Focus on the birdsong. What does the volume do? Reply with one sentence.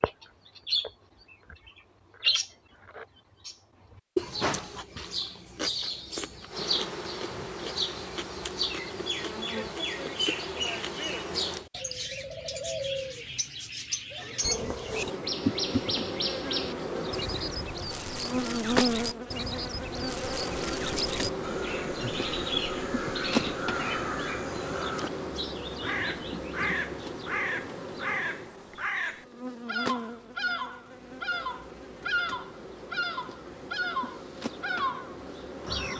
The volume of the birdsong stays about the same.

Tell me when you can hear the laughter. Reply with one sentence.
The laughter can't be heard in this clip.